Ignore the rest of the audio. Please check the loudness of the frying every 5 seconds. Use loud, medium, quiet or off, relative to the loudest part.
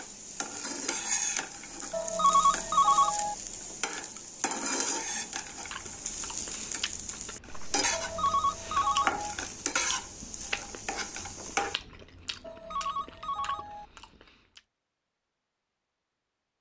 loud, loud, loud, off.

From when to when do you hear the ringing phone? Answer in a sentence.
The ringing phone can be heard from 1.9 to 3.4 s, from 7.9 to 9.3 s and from 12.4 to 13.8 s.